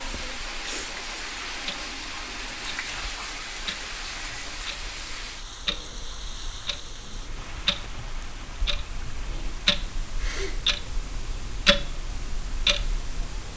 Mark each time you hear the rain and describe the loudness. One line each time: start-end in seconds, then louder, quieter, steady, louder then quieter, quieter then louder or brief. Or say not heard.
0.0-13.5 quieter.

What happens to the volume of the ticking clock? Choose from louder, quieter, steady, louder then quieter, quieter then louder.
louder.